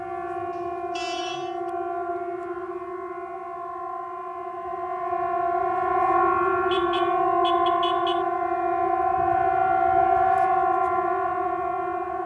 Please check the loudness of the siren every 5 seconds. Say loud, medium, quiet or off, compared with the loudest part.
medium, loud, loud.